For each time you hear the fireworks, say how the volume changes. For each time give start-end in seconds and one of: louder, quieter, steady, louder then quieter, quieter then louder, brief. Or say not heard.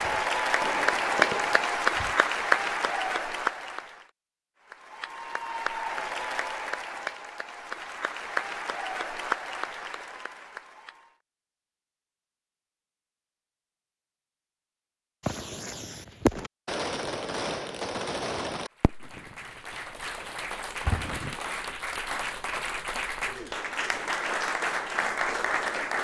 0.0-2.1 brief
15.2-19.4 louder then quieter
20.9-21.4 brief.